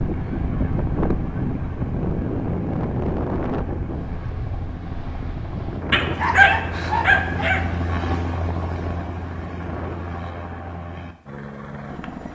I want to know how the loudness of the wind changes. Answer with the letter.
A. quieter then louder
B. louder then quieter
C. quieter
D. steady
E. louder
C.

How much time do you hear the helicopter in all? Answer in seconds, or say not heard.
12 s.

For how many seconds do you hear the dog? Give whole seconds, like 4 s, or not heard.
2 s.